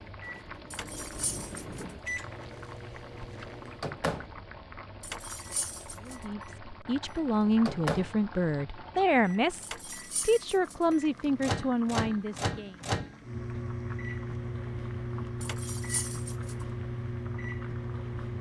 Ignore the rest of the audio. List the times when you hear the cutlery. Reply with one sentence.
The cutlery can be heard from 0.7 to 1.9 s, from 5.0 to 6.2 s, from 9.6 to 10.8 s and from 15.4 to 16.6 s.